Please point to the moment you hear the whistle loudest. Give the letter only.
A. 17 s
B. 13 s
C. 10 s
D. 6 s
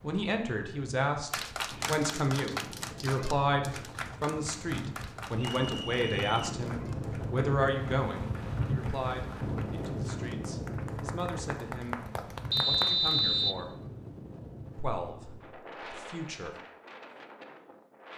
B.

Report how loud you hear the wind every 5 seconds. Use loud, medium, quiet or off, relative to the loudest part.
medium, loud, loud, medium.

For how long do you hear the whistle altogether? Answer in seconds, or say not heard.
2 s.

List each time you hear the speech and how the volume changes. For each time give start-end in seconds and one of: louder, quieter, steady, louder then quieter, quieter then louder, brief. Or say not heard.
0.0-12.0 quieter
12.7-13.7 brief
14.8-16.6 brief.